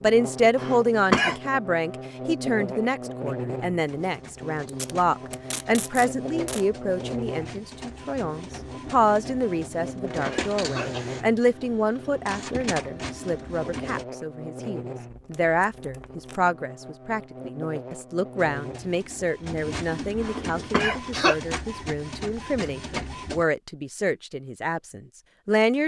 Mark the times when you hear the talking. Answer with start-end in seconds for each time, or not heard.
0.0-25.8.